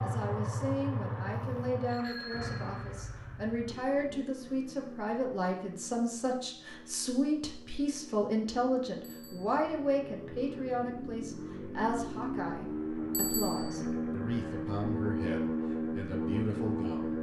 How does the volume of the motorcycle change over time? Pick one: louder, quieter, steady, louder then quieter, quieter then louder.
quieter then louder.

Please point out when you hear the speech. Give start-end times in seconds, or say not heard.
0.0-17.1.